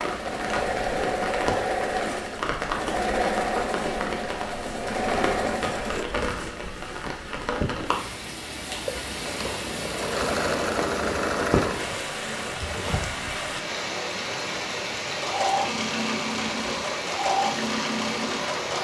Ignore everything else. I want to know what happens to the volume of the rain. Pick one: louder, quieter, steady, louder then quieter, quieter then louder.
steady.